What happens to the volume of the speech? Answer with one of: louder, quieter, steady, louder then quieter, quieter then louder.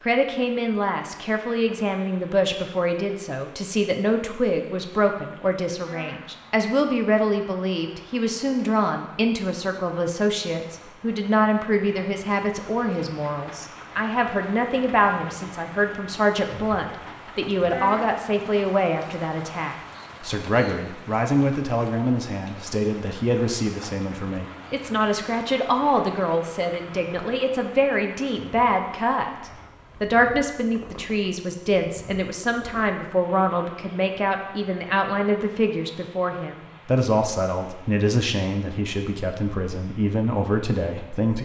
steady.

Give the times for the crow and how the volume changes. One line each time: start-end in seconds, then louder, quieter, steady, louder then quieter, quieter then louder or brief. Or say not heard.
not heard.